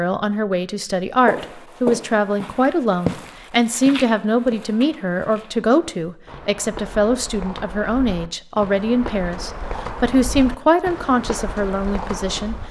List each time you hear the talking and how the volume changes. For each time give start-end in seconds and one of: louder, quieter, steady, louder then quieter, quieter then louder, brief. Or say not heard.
0.0-12.6 steady.